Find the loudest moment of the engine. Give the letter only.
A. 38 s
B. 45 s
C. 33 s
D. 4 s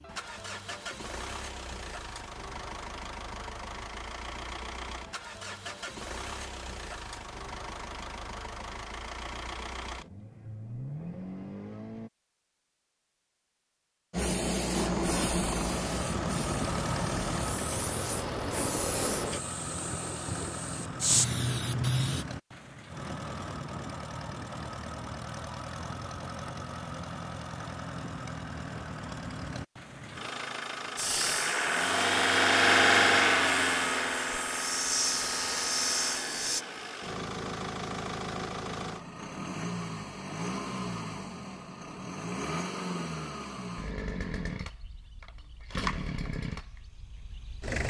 C.